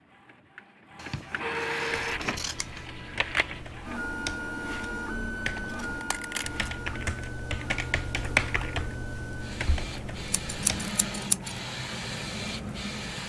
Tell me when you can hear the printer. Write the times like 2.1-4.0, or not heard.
0.0-13.2.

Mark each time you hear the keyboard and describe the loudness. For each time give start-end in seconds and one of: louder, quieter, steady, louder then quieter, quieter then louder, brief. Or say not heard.
1.9-10.9 louder then quieter.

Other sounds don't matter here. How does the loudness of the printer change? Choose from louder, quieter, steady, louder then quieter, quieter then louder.
quieter then louder.